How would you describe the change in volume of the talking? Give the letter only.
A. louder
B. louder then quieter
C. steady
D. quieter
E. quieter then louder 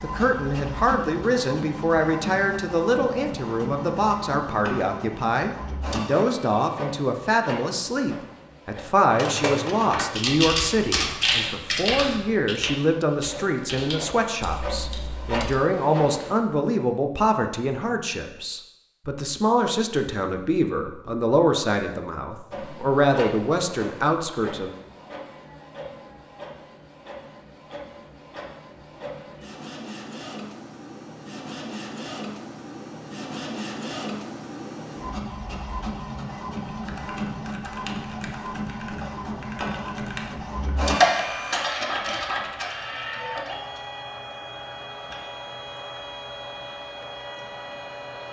C.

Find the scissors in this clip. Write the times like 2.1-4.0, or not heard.
not heard.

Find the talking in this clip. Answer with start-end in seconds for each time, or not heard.
0.0-24.7.